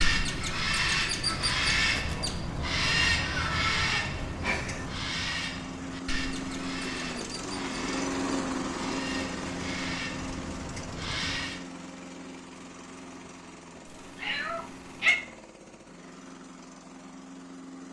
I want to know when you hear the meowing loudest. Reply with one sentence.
The loudest moment of the meowing is at 15 seconds.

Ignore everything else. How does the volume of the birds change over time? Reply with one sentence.
The volume of the birds goes down.